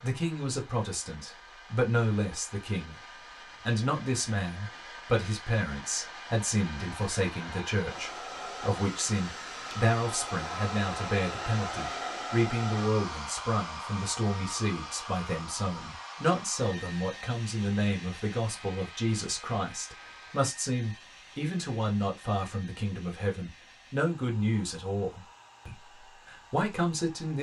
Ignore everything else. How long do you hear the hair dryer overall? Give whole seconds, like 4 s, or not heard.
27 s.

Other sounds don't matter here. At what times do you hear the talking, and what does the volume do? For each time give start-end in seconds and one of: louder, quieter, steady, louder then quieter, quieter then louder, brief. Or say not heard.
0.0-3.0 brief
3.6-27.3 steady.